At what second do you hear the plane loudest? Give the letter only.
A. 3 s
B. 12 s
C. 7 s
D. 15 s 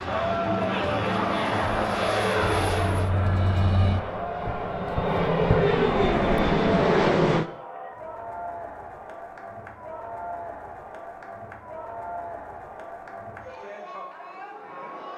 C.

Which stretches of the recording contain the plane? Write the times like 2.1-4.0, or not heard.
0.0-7.5.